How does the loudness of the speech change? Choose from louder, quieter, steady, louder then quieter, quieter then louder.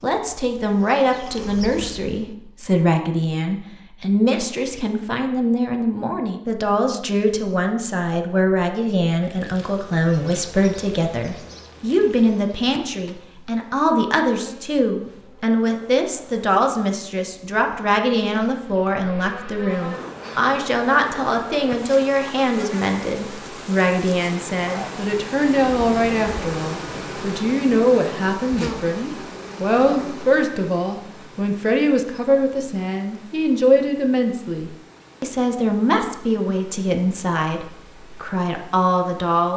steady.